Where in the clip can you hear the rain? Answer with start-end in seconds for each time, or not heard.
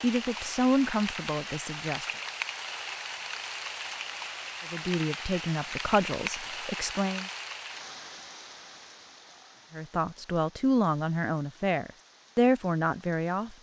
0.0-13.5.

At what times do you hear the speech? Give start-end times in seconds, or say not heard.
0.0-2.0, 4.7-7.3, 9.7-13.5.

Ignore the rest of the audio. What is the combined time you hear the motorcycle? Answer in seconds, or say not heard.
not heard.